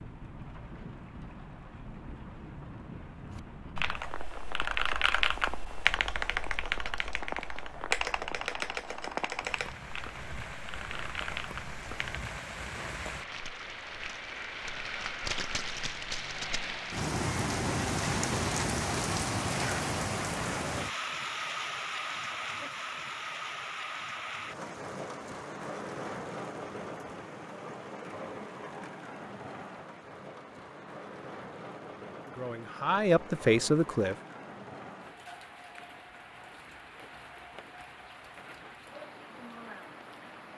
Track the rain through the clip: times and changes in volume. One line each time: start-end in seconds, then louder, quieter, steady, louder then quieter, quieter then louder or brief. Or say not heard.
0.0-40.5 louder then quieter.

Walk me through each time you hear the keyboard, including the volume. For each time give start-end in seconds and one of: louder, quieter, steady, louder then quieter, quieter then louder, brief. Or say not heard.
3.3-12.2 quieter.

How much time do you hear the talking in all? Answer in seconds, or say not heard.
2 s.